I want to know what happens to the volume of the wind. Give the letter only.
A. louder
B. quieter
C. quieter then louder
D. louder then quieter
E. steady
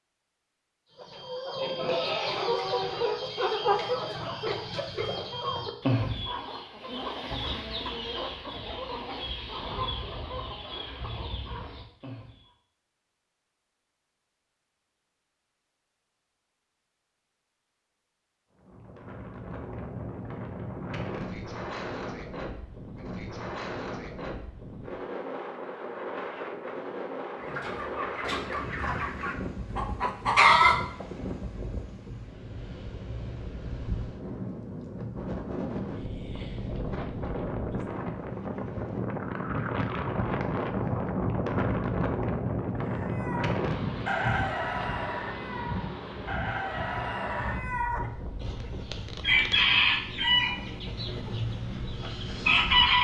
D.